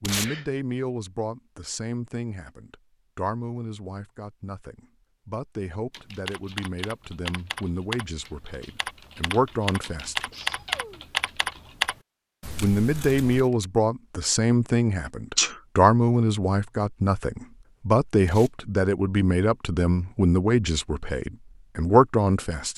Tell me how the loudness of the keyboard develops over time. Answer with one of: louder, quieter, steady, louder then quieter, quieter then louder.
louder.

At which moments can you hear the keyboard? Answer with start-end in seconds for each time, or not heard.
5.9-13.4.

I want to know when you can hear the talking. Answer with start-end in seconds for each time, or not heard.
0.0-10.3, 12.6-22.7.